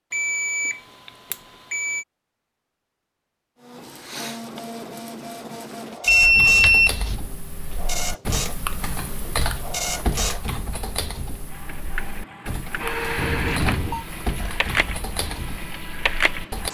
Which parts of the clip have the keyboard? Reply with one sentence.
You can hear the keyboard from 6.2 to 16.6 s.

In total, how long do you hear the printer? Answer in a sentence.
You can hear the printer for 13 seconds altogether.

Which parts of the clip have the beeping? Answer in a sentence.
You can hear the beeping from 0.1 to 2.0 s, from 6.0 to 7.2 s and from 13.2 to 14.1 s.